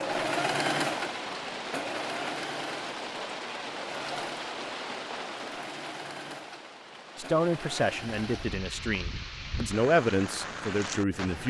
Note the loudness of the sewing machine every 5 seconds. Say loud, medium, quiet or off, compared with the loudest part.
loud, medium, off.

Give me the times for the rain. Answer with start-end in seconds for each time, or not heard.
0.0-11.4.